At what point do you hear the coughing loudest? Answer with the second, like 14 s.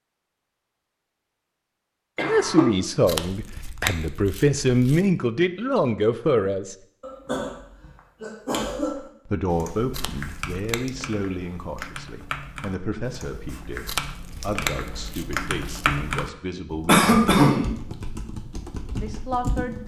17 s.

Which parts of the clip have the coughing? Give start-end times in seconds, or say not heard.
2.1-2.7, 7.0-9.0, 16.9-17.7.